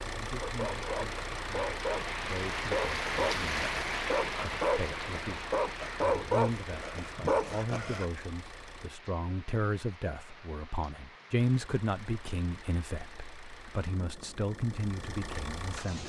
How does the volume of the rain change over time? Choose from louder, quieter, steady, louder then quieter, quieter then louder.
quieter.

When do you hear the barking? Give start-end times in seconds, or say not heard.
0.4-8.1.